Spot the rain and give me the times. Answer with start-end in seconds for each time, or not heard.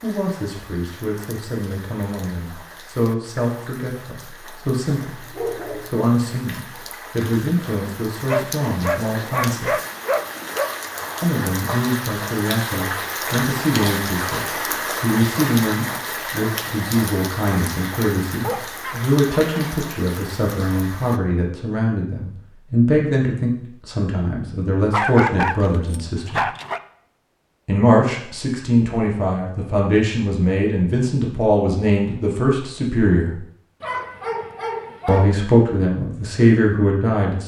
0.0-21.2.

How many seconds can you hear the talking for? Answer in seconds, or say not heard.
33 s.